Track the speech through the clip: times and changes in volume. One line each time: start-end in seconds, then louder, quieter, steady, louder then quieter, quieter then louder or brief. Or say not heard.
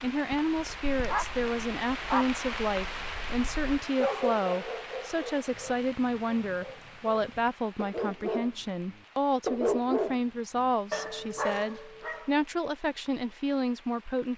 0.0-14.3 steady.